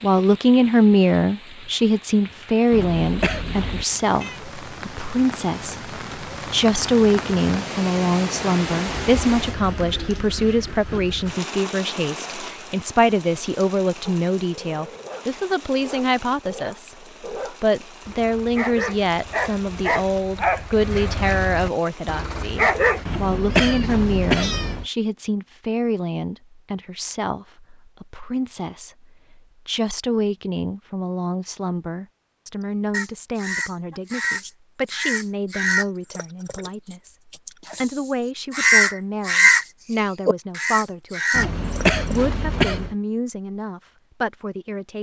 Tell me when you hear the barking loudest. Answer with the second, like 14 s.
23 s.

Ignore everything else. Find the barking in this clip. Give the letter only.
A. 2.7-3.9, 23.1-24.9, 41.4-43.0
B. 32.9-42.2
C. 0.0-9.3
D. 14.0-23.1
D.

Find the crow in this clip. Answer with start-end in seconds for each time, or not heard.
32.9-42.2.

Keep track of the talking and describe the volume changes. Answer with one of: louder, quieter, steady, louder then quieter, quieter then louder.
quieter.